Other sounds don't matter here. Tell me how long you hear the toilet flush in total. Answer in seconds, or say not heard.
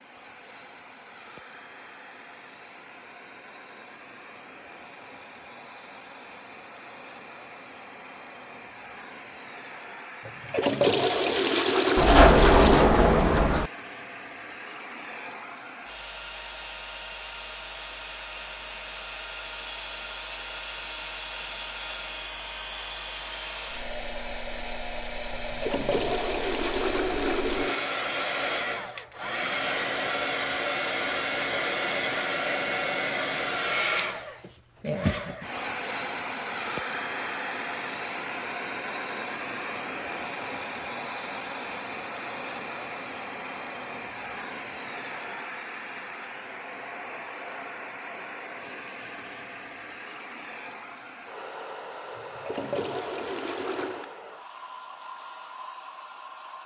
7 s.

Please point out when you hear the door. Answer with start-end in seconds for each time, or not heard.
11.9-13.7.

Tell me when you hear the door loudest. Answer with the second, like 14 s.
12 s.